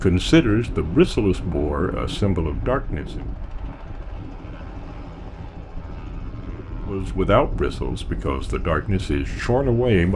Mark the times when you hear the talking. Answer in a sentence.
You can hear the talking from 0.0 to 3.2 s and from 6.8 to 10.1 s.